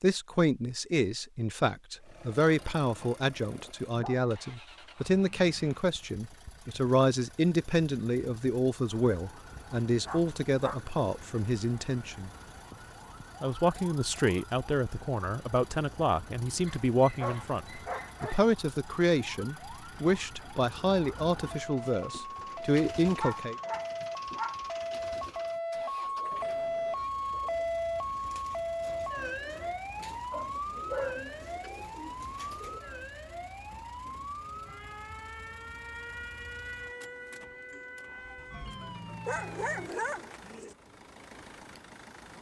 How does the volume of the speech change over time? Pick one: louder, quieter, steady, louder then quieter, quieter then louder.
steady.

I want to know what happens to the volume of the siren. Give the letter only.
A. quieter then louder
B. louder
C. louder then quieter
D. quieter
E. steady
C.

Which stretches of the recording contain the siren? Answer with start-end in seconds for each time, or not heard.
9.1-39.9.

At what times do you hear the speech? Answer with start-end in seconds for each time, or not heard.
0.0-12.3, 13.4-23.6.